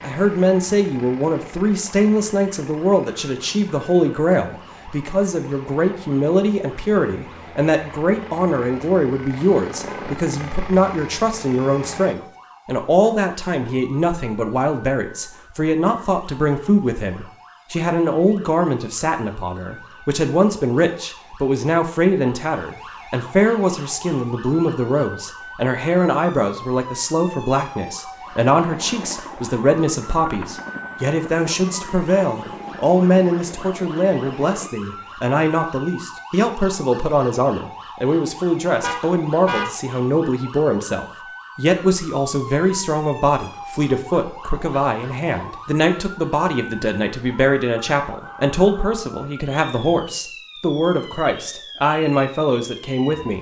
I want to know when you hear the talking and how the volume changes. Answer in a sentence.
You can hear the talking from 0.0 to 53.3 s, at a steady volume.